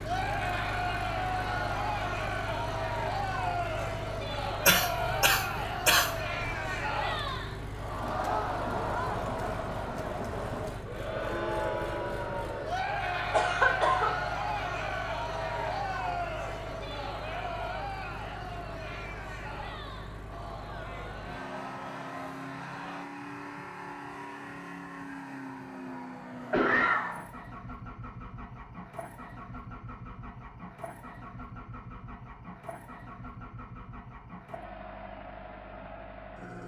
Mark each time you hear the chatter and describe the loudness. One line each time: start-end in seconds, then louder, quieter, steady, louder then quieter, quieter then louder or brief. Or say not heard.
0.0-23.1 quieter.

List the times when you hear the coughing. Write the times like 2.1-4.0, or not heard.
4.7-6.1, 13.3-14.2, 26.5-27.2.